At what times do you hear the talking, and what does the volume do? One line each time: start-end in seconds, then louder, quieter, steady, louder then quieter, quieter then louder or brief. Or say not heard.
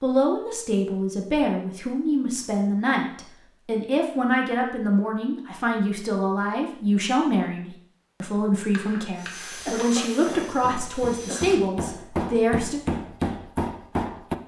0.0-12.8 steady.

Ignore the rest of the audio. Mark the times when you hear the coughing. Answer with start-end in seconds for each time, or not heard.
9.5-11.5.